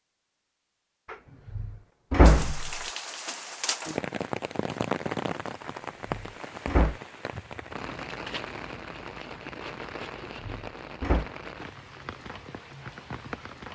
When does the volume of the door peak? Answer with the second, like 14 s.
2 s.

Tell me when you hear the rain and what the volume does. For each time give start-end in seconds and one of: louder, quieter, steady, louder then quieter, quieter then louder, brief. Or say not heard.
2.2-13.6 quieter.